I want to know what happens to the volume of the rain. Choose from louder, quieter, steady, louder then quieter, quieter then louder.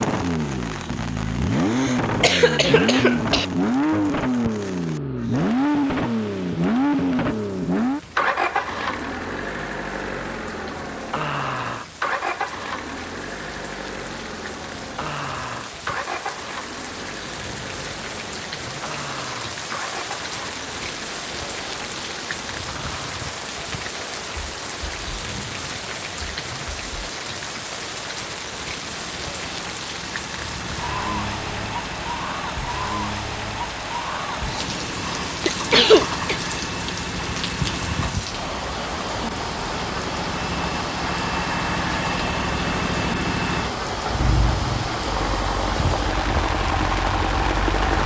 louder.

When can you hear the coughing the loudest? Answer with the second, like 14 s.
36 s.